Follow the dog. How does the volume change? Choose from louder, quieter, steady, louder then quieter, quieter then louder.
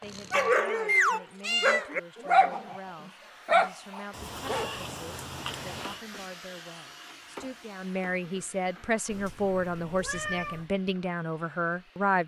quieter then louder.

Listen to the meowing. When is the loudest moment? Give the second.
1 s.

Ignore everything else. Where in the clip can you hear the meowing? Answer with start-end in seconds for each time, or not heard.
0.1-1.9, 4.1-6.0, 9.1-10.7.